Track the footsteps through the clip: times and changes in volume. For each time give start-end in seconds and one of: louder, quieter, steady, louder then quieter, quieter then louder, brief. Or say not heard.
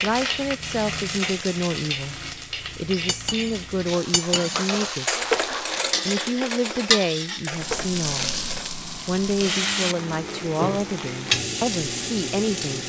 not heard.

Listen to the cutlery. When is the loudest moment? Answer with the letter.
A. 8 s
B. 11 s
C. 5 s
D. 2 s
C.